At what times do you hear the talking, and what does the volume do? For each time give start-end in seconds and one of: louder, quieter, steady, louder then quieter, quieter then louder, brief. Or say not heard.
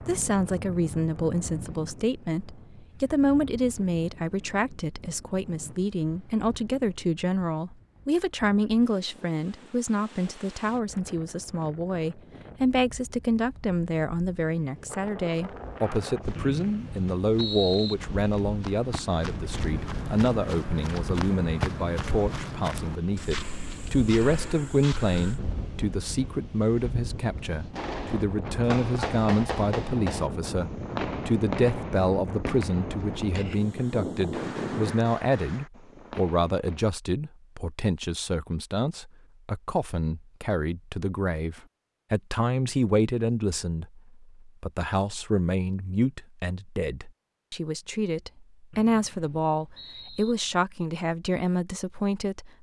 0.1-52.5 steady.